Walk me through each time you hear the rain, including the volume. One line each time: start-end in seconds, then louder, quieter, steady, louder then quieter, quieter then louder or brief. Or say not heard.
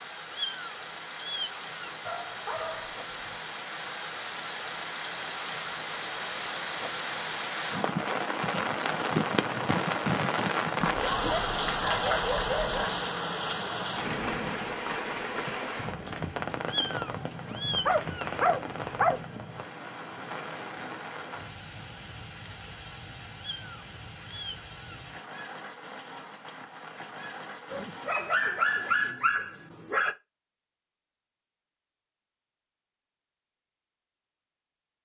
0.0-29.1 louder then quieter.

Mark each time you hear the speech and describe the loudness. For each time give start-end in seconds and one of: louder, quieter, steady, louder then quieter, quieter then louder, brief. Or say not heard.
not heard.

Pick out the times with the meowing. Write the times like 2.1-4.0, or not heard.
0.3-1.9, 16.6-18.3, 23.4-25.1.